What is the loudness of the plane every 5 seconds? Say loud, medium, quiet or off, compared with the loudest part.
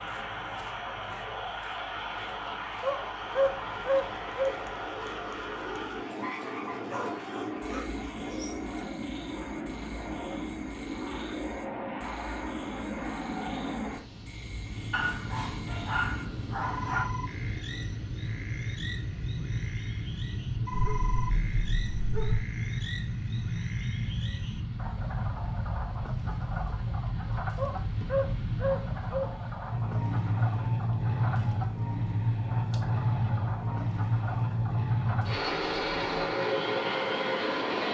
medium, medium, medium, medium, medium, medium, loud, loud.